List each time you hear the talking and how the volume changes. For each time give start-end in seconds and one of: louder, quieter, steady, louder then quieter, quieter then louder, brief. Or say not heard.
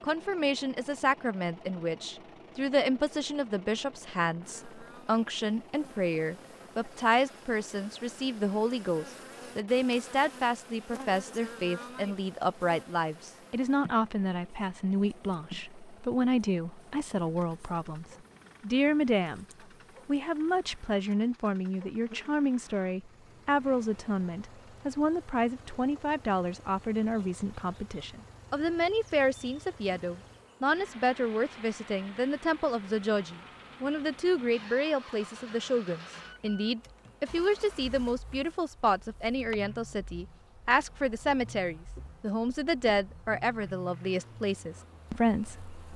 0.0-19.4 steady
20.1-45.8 steady.